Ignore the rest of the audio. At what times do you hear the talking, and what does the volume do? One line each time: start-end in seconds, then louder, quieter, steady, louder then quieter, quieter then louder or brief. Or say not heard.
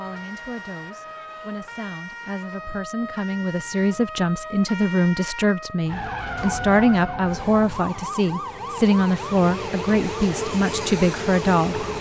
0.0-11.8 louder.